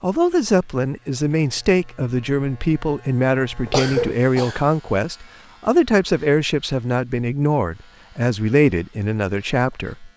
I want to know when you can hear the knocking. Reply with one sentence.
The knocking can't be heard in this clip.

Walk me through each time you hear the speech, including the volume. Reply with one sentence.
The speech can be heard from 0.0 to 10.1 s, at a steady volume.